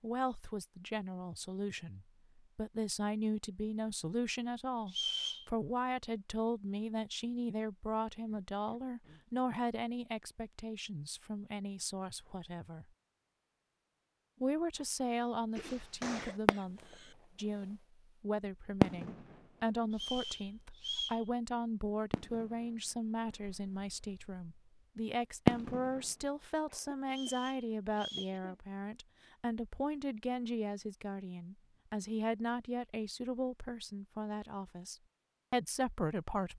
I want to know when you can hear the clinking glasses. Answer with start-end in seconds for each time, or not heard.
not heard.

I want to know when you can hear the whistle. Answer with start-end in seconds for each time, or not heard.
4.8-5.5, 19.9-21.2, 27.1-28.4.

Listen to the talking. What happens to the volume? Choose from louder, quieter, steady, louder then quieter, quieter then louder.
steady.